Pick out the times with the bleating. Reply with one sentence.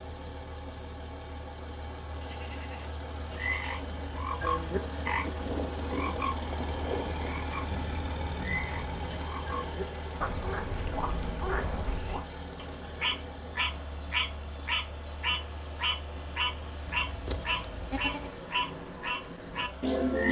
You can hear the bleating from 2.2 to 3.8 s, from 7.7 to 9.2 s and from 16.9 to 18.4 s.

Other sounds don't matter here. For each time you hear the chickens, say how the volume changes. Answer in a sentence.
You can't hear the chickens here.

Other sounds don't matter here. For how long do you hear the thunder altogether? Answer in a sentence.
You can hear the thunder for 3 seconds altogether.